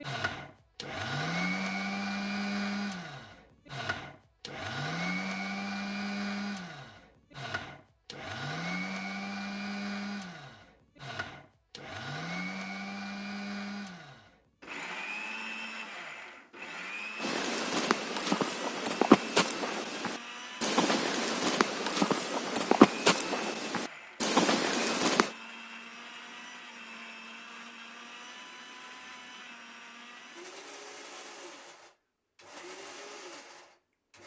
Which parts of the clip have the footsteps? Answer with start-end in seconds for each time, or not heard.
17.2-25.3.